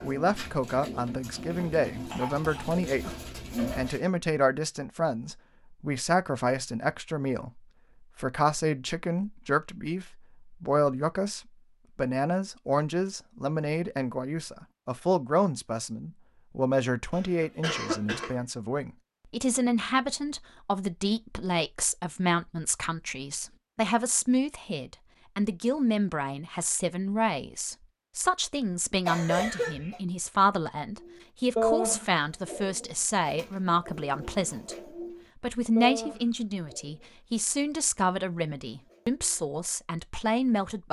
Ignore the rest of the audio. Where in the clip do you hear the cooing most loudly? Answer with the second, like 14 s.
32 s.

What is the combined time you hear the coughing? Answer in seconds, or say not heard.
3 s.